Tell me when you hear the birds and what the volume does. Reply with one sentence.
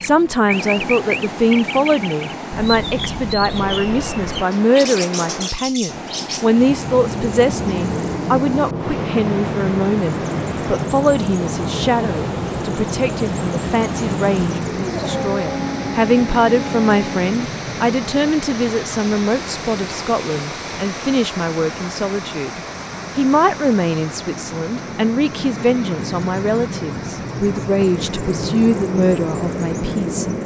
You can hear the birds from 0.0 to 30.4 s, getting quieter then louder.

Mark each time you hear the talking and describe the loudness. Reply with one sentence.
The talking can be heard from 0.0 to 30.4 s, at a steady volume.